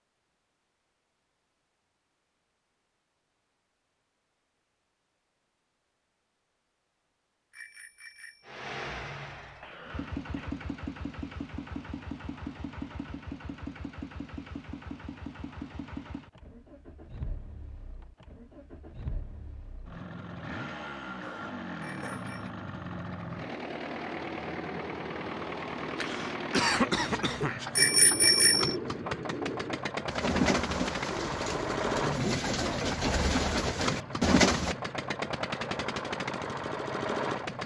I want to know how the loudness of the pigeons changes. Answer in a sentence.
The loudness of the pigeons goes up.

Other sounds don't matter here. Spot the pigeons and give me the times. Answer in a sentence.
The pigeons can be heard from 26.9 to 34.8 s.